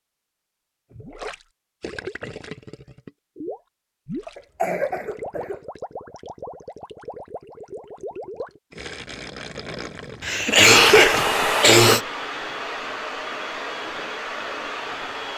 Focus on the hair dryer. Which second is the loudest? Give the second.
11 s.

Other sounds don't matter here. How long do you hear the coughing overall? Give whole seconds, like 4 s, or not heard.
3 s.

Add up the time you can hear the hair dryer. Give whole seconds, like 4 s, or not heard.
5 s.